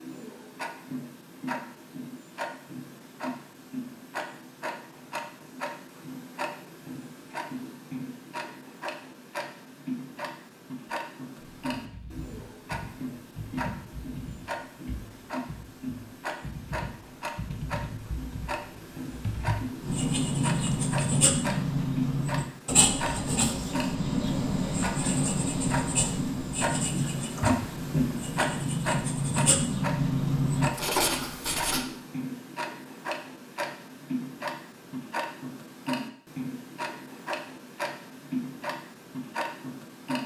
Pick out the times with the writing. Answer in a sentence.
You can hear the writing from 19.8 to 31.9 s.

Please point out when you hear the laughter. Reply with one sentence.
The laughter can't be heard in this clip.